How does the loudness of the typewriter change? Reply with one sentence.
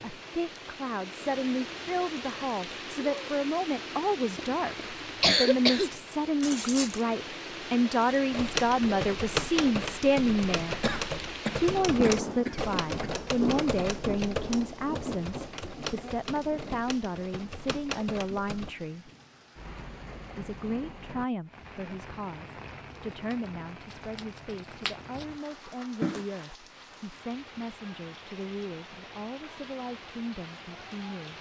The loudness of the typewriter goes down.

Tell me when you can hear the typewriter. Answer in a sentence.
You can hear the typewriter from 8.3 to 18.7 s.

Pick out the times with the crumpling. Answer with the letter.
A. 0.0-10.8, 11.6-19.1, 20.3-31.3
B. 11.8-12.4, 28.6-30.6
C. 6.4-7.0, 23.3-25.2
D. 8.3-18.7
C.